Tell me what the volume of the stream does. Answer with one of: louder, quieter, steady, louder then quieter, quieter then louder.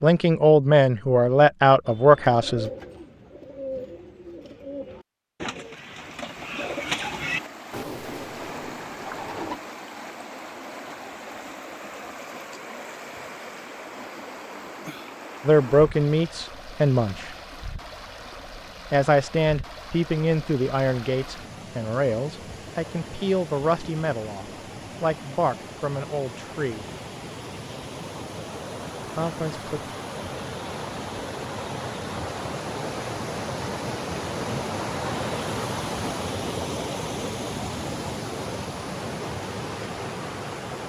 louder.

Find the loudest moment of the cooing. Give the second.
7 s.